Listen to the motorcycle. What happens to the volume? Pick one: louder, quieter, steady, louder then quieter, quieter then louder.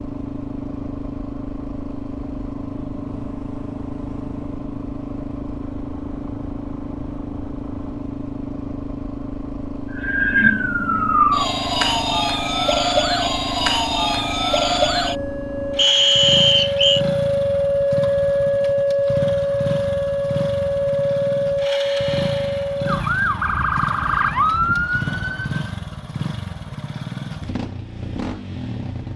steady.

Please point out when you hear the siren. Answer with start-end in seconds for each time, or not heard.
9.9-25.7.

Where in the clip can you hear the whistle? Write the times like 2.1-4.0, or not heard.
15.8-17.1.